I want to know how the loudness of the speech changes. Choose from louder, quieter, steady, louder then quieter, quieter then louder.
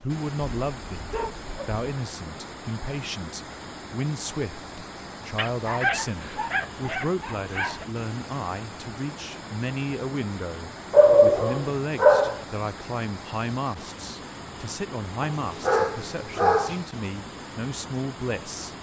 steady.